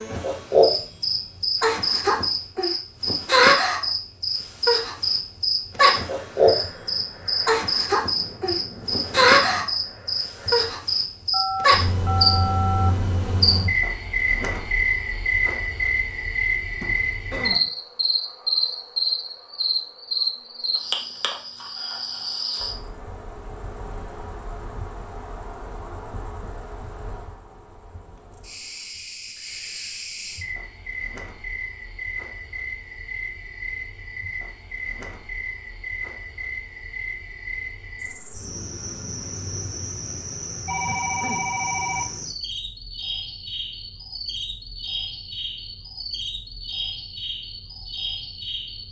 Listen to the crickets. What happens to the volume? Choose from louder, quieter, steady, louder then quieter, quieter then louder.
quieter.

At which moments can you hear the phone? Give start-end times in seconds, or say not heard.
11.3-12.9, 16.8-17.7, 40.6-42.0.